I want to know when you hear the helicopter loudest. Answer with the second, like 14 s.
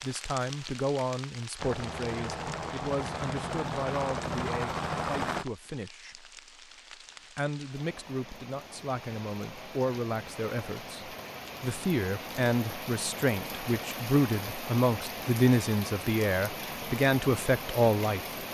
5 s.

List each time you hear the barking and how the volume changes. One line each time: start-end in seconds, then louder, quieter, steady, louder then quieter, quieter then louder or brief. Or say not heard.
not heard.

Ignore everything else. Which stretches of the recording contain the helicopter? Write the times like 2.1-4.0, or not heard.
1.6-5.5.